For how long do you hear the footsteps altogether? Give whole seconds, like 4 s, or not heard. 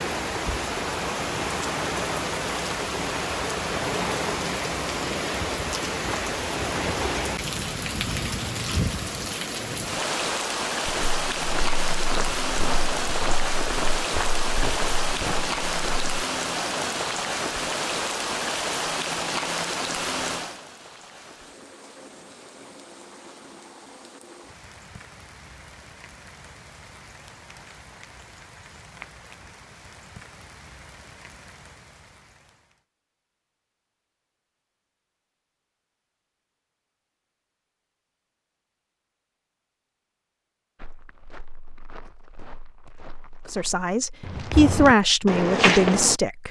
11 s.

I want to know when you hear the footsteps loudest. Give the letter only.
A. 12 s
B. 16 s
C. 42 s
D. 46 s
D.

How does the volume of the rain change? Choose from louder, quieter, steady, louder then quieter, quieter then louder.
quieter.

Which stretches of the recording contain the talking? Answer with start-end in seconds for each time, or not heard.
43.5-46.4.